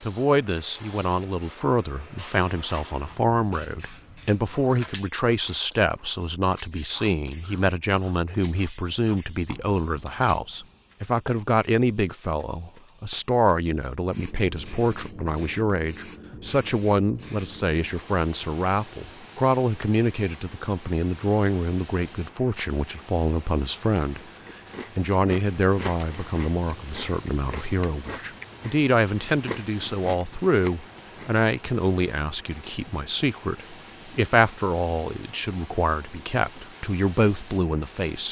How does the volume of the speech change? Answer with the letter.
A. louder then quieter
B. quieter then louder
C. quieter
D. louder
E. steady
E.